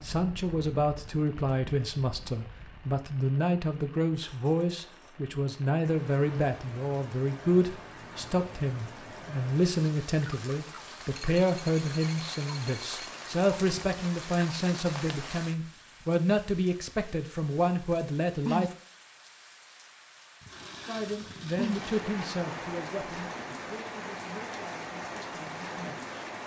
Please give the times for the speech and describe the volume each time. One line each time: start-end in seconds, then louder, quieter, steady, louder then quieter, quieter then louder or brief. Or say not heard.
0.0-18.8 steady
20.9-26.1 quieter.